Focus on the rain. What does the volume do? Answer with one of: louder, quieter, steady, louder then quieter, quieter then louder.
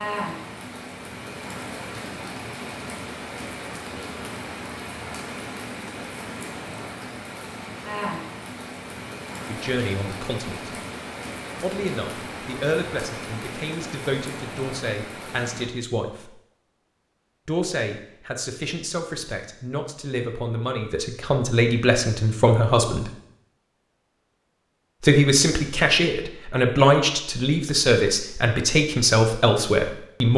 steady.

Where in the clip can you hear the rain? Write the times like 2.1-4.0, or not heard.
0.0-15.7.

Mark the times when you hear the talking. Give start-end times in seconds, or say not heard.
9.4-10.7, 11.6-16.4, 17.4-23.1, 25.0-30.3.